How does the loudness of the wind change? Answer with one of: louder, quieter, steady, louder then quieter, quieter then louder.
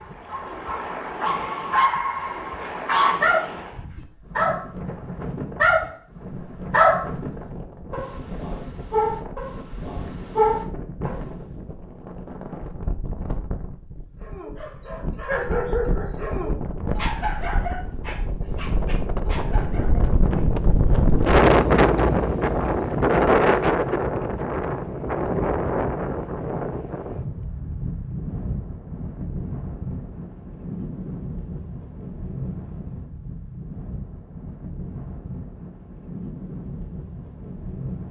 louder then quieter.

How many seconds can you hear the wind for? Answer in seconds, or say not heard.
38 s.